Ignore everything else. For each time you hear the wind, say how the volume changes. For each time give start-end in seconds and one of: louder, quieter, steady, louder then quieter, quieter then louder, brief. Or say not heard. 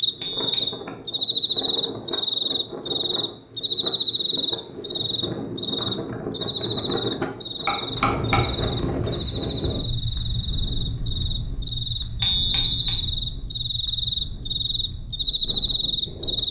0.0-16.4 louder then quieter.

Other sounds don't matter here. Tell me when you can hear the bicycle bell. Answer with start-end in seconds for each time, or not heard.
0.2-0.8, 7.7-8.8, 12.2-13.0.